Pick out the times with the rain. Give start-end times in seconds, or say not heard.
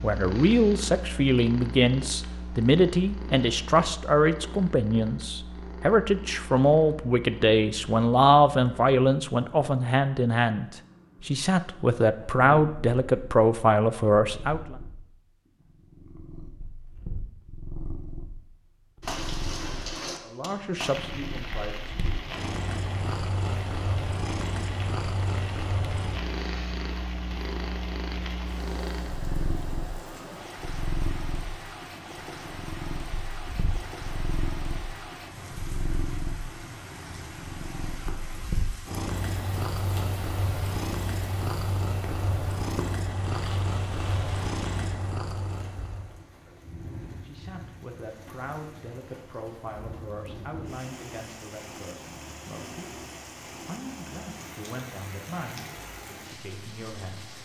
19.0-57.4.